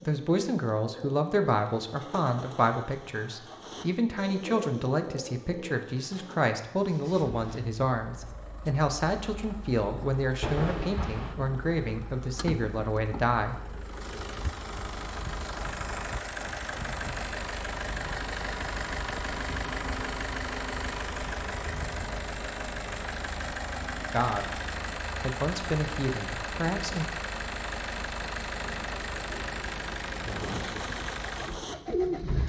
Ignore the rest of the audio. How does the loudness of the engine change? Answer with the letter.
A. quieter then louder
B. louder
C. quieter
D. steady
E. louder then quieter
B.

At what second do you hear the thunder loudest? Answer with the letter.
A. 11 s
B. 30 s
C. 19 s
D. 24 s
A.